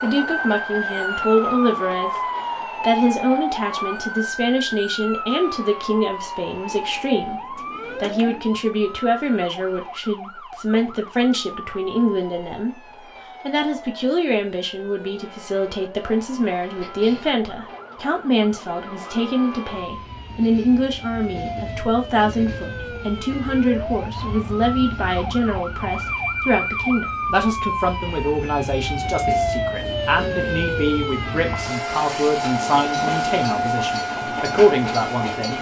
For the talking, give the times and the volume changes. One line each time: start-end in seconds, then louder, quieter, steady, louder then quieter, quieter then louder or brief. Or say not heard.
0.0-12.8 steady
13.4-35.5 steady.